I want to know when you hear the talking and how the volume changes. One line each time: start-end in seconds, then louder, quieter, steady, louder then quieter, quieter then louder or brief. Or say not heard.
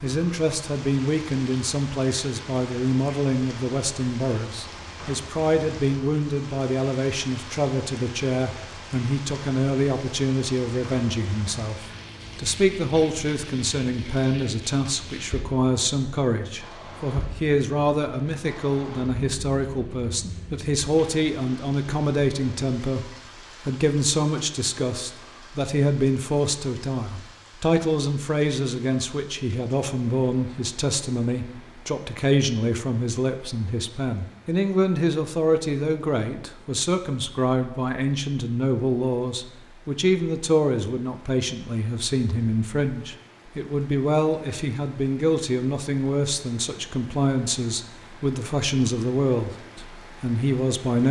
0.0-23.1 steady
23.6-51.0 steady.